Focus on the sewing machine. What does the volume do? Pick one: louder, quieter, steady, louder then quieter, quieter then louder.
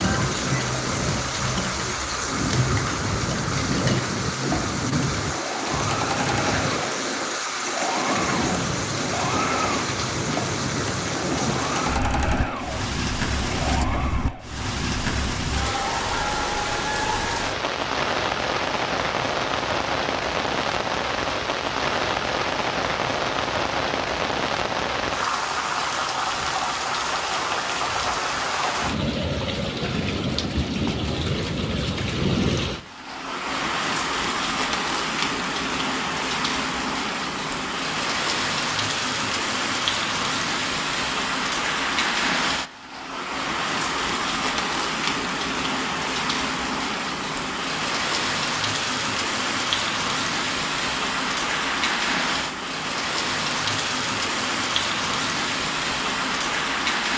steady.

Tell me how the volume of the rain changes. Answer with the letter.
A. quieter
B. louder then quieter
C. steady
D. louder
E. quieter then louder
C.